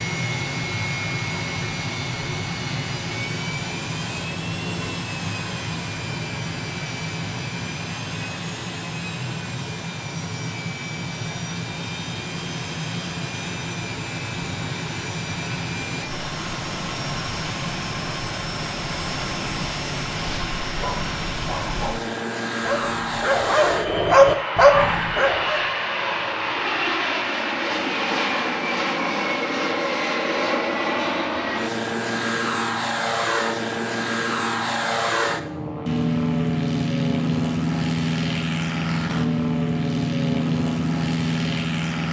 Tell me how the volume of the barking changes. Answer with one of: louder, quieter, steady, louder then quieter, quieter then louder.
louder.